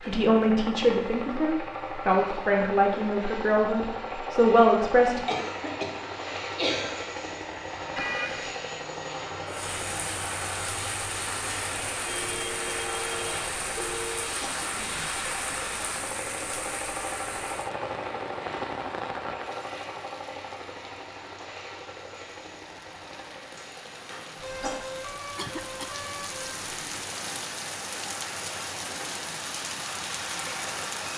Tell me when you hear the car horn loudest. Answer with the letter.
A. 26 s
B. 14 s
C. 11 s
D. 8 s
D.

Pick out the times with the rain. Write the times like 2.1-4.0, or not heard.
9.4-31.1.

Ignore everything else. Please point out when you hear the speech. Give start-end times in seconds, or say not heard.
0.0-5.2.